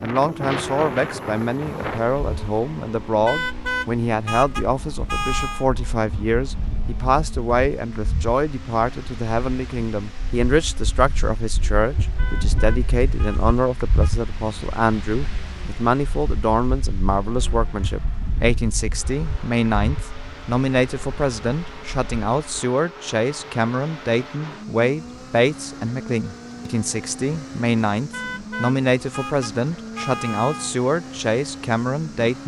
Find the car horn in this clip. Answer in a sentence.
The car horn can be heard from 3.2 to 5.7 s, from 12.2 to 14.1 s and from 28.1 to 30.8 s.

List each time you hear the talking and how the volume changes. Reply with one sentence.
You can hear the talking from 0.0 to 32.4 s, at a steady volume.